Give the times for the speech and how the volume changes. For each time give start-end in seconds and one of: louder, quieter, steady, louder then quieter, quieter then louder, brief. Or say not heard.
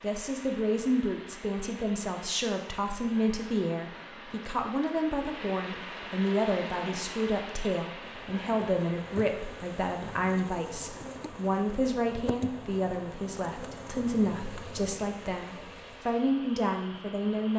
0.0-17.5 steady.